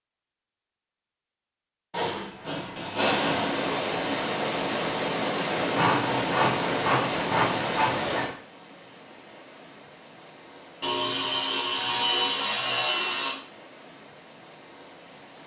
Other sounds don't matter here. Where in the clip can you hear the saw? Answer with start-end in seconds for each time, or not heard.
1.9-3.5, 5.5-8.2, 10.8-13.3.